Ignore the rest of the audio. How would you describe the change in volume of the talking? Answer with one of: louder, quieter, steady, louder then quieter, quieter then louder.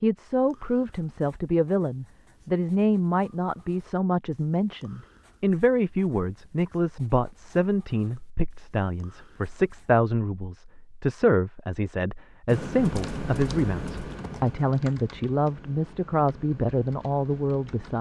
steady.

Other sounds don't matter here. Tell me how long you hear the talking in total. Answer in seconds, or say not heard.
18 s.